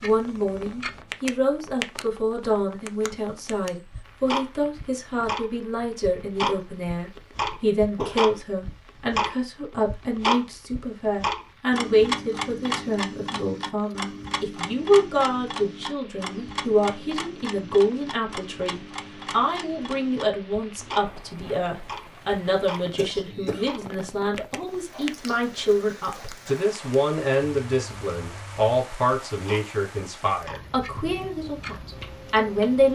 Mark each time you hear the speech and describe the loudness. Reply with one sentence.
You can hear the speech from 0.0 to 32.8 s, at a steady volume.